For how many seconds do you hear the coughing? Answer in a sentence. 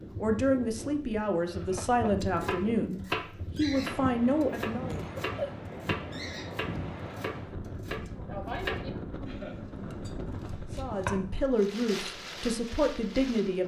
The coughing can be heard for 2 seconds in total.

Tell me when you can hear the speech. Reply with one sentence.
You can hear the speech from 0.2 to 5.0 s and from 10.8 to 13.6 s.